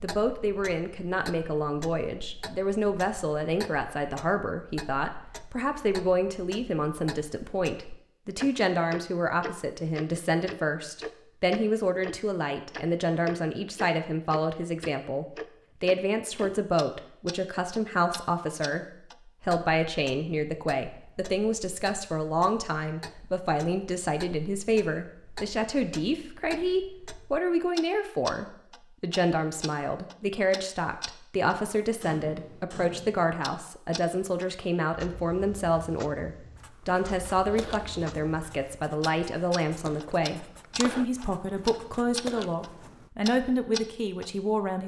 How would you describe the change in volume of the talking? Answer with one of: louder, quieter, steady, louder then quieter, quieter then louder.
steady.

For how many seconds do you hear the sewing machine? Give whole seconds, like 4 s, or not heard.
not heard.